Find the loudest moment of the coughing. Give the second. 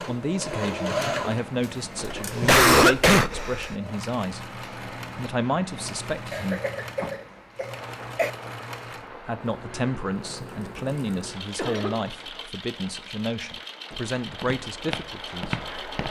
3 s.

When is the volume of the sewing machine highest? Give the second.
1 s.